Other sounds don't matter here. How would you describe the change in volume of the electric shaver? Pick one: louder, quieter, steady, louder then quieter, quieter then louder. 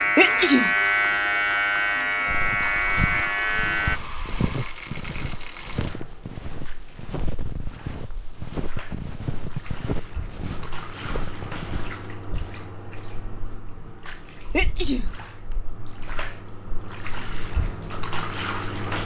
steady.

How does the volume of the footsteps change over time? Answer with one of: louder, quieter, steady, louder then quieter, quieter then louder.
steady.